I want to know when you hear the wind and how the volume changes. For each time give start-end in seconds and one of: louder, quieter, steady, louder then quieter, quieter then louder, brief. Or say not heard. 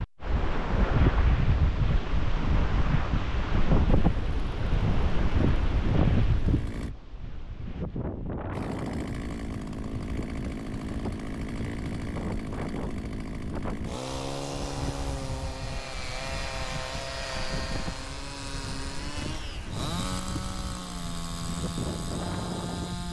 0.0-23.0 quieter.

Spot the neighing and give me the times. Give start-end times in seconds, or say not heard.
not heard.